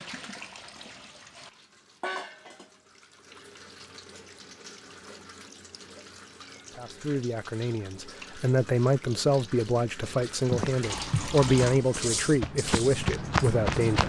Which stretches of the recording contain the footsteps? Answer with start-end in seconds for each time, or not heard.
10.1-14.0.